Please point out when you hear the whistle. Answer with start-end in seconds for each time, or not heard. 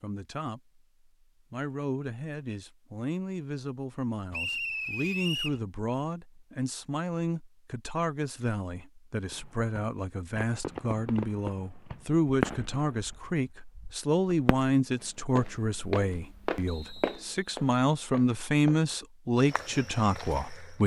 4.3-5.6, 16.6-17.2.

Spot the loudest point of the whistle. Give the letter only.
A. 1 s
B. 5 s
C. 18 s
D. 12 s
B.